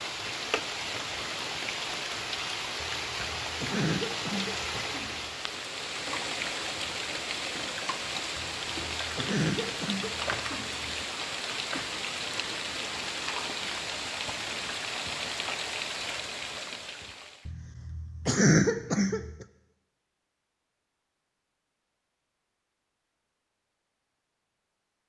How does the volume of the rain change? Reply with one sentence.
The volume of the rain stays about the same.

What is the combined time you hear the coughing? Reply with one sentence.
The coughing can be heard for 7 seconds in total.